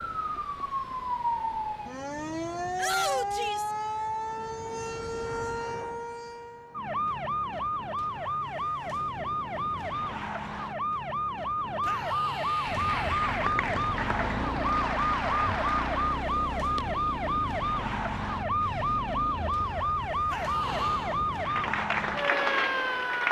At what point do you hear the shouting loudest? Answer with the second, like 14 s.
3 s.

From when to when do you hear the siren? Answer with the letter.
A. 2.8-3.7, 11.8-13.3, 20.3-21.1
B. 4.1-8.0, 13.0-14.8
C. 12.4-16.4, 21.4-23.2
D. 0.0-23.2
D.